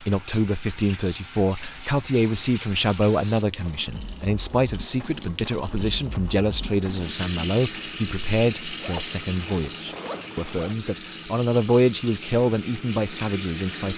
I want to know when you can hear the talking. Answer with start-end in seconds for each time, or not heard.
0.0-13.9.